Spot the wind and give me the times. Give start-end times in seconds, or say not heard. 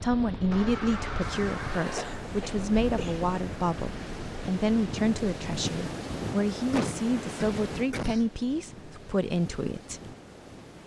0.0-10.8.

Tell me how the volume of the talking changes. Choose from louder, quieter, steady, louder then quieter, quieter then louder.
steady.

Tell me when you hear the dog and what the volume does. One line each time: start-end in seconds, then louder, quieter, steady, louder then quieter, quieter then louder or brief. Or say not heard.
not heard.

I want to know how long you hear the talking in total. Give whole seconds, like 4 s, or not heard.
10 s.